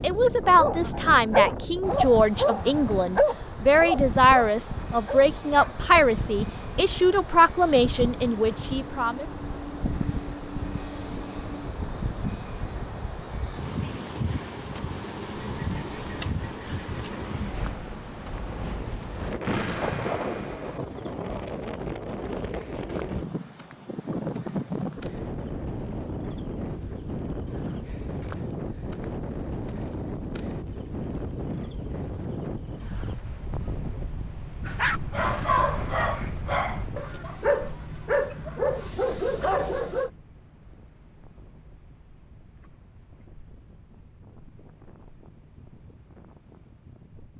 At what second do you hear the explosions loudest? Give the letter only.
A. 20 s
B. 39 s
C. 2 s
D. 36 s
A.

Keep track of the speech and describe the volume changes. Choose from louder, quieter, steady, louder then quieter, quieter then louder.
steady.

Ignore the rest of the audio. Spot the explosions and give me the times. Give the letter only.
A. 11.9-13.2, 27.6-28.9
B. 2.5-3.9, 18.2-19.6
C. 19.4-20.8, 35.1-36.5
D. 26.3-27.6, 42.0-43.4
C.